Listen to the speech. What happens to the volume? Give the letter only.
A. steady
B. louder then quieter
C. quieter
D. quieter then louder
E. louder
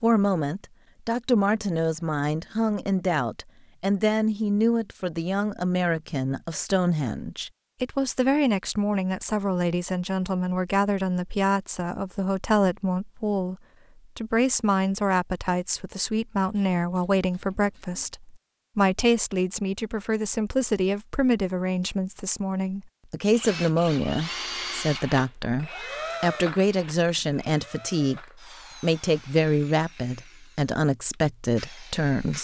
A.